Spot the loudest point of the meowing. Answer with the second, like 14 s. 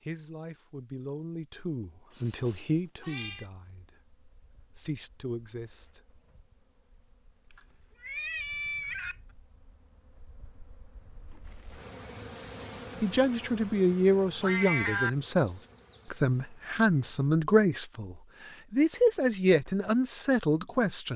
15 s.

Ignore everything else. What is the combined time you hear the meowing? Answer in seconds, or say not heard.
4 s.